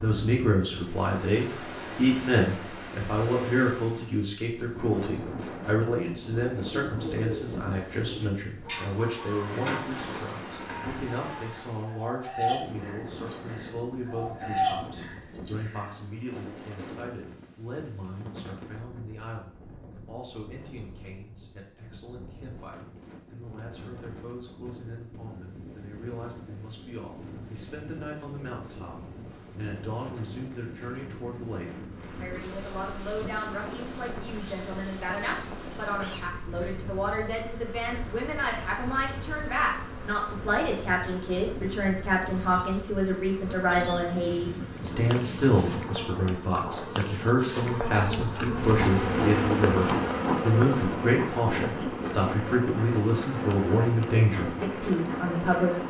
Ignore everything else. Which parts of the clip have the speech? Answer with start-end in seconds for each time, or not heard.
0.0-28.9, 29.6-55.8.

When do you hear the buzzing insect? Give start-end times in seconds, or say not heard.
31.9-55.8.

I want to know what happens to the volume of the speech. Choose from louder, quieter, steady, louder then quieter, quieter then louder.
quieter then louder.